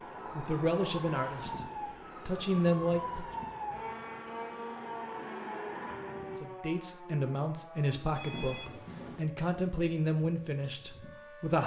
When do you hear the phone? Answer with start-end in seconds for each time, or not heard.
8.2-9.2.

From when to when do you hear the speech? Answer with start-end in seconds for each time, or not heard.
0.3-1.6, 2.2-3.2, 6.2-11.6.